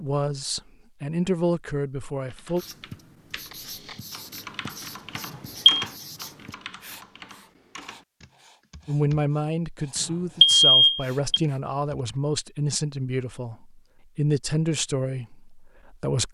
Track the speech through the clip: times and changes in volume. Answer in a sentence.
You can hear the speech briefly from 0.0 to 2.6 s; and from 8.8 to 16.2 s, at a steady volume.